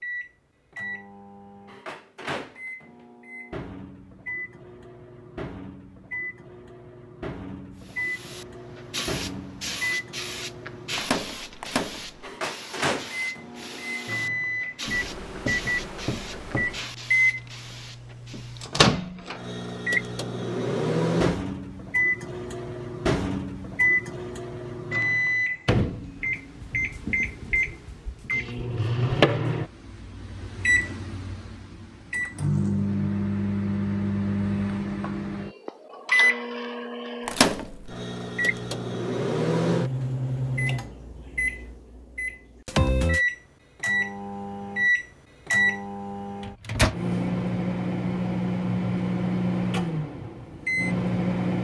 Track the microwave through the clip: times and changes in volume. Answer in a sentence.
You can hear the microwave from 0.0 to 51.5 s, getting louder.